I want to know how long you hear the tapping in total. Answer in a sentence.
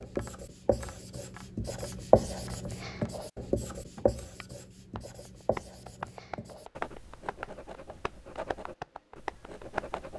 The tapping can be heard for 10 seconds in total.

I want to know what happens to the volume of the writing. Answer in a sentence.
The loudness of the writing goes down.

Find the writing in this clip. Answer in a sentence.
The writing can be heard from 0.0 to 10.1 s.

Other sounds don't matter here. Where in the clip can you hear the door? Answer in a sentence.
You can't hear the door here.